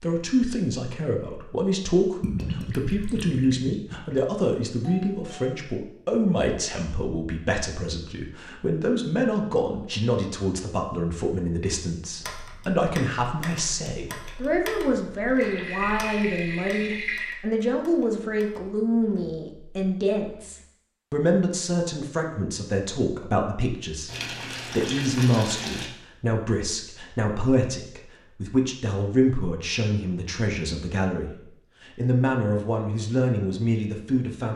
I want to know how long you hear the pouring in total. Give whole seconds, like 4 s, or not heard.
6 s.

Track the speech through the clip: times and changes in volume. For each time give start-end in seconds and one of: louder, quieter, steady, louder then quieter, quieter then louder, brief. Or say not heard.
0.0-34.5 steady.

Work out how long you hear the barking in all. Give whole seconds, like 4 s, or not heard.
not heard.